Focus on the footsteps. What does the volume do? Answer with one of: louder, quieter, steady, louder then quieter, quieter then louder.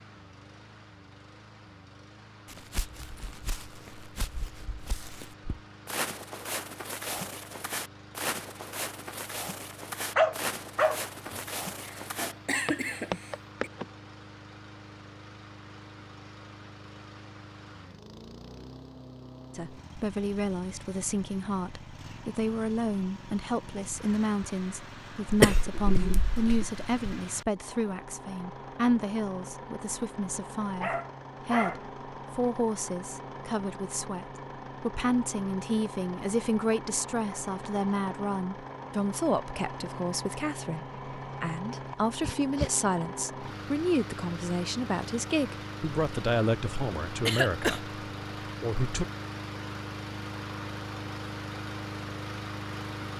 louder.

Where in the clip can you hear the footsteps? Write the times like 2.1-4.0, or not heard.
2.5-13.8.